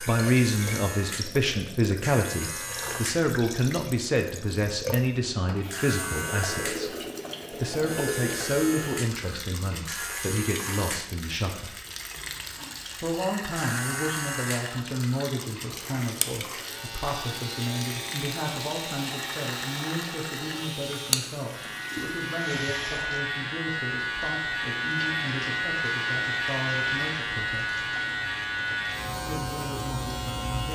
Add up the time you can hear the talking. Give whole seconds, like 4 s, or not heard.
28 s.